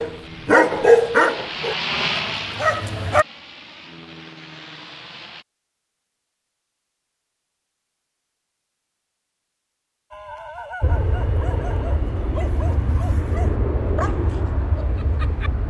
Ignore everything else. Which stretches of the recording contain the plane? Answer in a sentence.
The plane can be heard from 0.0 to 5.5 s and from 10.8 to 15.6 s.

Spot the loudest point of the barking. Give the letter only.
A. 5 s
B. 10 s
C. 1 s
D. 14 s
C.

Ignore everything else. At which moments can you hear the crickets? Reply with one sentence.
You can't hear the crickets here.